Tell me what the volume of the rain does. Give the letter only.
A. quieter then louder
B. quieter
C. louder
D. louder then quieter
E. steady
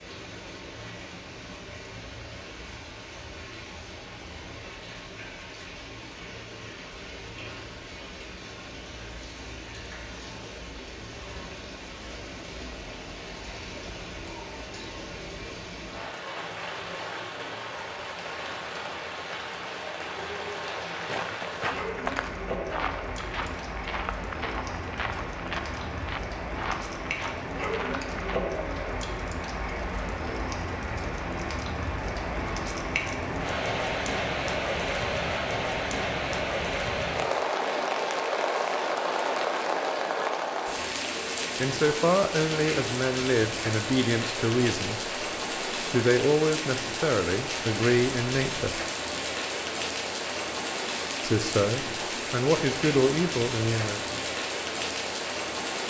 C.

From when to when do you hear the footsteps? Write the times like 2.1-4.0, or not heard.
20.9-28.4.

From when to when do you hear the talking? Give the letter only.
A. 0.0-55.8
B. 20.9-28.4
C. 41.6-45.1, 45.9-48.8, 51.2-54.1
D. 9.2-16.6
C.